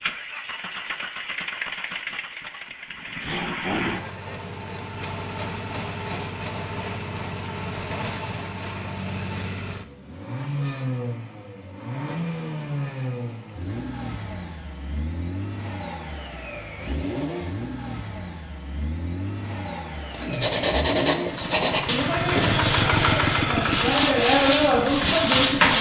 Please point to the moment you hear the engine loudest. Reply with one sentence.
The loudest moment of the engine is at 23 seconds.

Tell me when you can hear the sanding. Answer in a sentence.
The sanding can be heard from 20.1 to 25.7 s.